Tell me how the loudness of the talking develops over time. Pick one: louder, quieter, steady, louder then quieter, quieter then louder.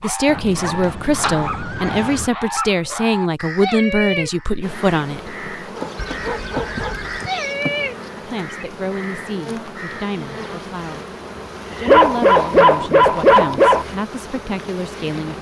quieter.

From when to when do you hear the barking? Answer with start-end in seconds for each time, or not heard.
0.5-3.1, 5.8-7.6, 11.8-13.8.